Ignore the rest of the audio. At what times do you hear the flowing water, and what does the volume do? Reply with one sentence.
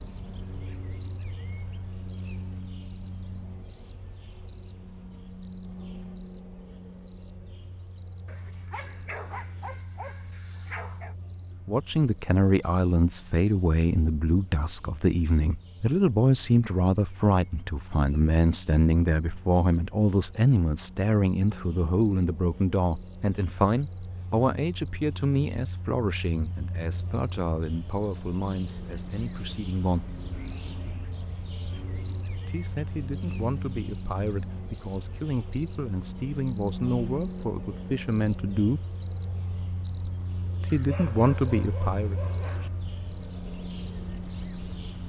The flowing water can't be heard in this clip.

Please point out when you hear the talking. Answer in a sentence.
The talking can be heard from 11.7 to 30.1 s, from 32.4 to 38.9 s and from 40.6 to 42.1 s.